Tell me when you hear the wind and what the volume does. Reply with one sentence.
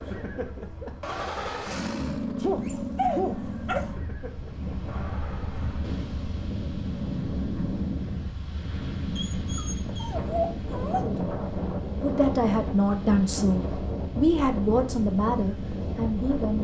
The wind can be heard from 0.0 to 16.5 s, getting louder.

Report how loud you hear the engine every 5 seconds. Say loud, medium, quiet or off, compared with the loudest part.
loud, medium, off, off.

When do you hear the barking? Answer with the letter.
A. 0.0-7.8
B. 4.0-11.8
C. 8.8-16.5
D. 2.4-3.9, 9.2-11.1
D.